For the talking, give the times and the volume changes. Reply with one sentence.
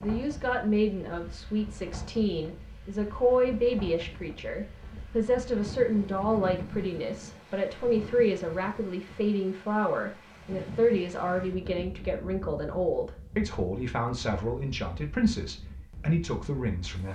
The talking can be heard from 0.0 to 17.1 s, at a steady volume.